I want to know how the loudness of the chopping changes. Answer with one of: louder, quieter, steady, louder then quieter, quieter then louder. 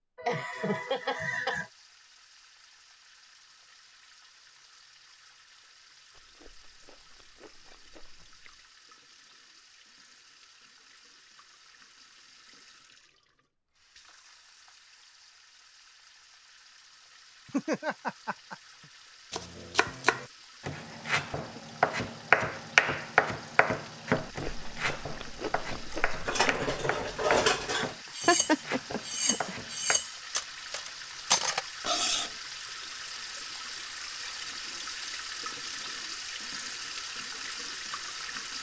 louder then quieter.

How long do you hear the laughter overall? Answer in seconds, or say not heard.
4 s.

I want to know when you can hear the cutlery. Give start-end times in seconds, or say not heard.
25.9-32.3.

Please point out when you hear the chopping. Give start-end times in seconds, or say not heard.
19.3-30.0.